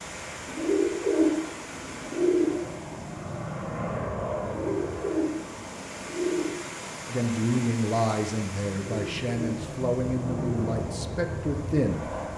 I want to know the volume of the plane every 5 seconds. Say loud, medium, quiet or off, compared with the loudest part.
loud, medium, loud.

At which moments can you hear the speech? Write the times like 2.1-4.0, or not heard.
7.0-12.1.